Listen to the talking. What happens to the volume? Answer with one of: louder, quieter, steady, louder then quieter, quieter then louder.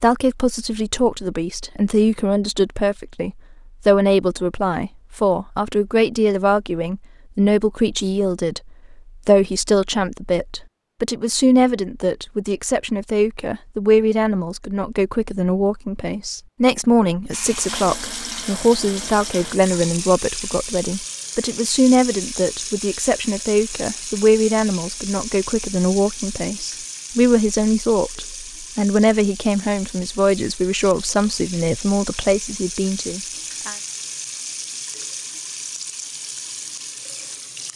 steady.